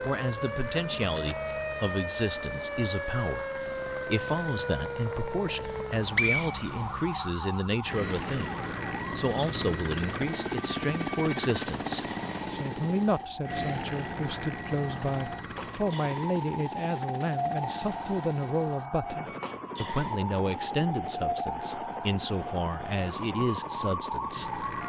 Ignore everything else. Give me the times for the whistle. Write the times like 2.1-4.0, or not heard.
5.7-7.2.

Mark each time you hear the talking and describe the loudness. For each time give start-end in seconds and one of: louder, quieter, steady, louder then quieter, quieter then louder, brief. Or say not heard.
0.0-24.6 steady.